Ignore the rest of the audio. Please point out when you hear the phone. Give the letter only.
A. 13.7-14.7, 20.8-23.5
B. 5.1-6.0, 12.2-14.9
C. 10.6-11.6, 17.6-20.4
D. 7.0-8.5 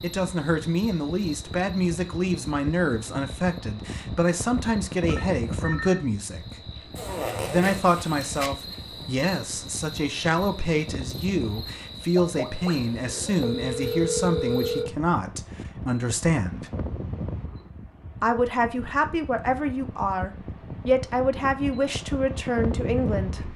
B.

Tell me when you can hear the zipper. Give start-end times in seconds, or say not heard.
7.0-8.5.